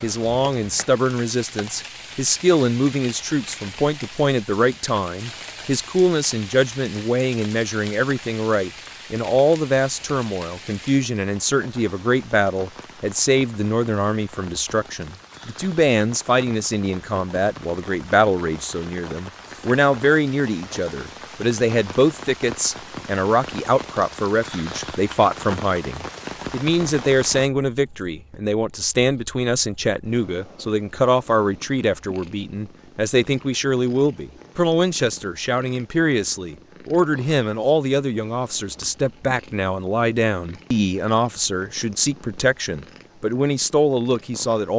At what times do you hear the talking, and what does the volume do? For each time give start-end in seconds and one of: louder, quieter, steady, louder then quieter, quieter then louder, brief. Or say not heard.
0.0-44.7 steady.